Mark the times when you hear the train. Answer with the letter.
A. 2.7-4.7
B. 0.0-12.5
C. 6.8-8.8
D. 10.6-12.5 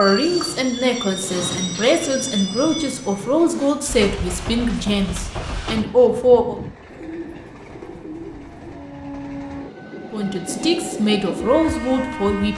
B.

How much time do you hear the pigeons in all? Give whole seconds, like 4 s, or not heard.
2 s.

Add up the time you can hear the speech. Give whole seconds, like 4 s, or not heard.
9 s.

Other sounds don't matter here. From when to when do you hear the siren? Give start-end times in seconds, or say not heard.
not heard.